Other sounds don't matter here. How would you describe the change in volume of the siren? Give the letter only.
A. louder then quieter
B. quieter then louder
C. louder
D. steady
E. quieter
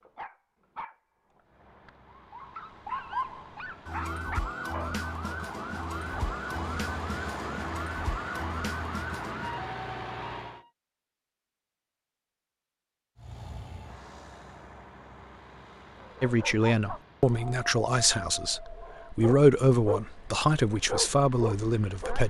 D.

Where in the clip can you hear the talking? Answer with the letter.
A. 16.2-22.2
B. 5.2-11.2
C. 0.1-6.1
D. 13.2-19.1
A.